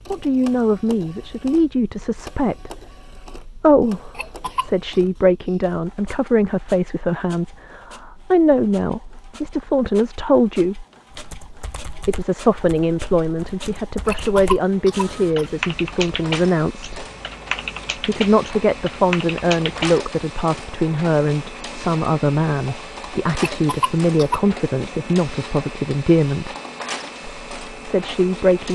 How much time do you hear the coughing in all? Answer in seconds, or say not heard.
3 s.